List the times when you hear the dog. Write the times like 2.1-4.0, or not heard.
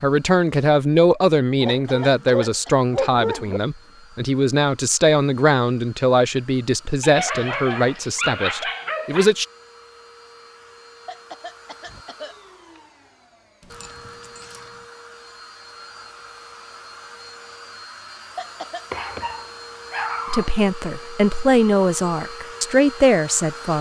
1.6-3.6, 7.0-9.3, 13.6-14.7, 18.9-20.5.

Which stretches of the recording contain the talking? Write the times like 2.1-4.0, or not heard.
0.0-9.4, 20.3-23.7.